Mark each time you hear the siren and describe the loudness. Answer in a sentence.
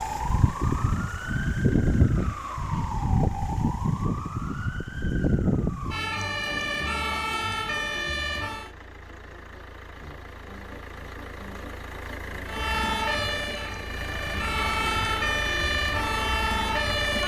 The siren can be heard from 0.0 to 8.7 s, at a steady volume; and from 12.4 to 17.2 s, getting quieter then louder.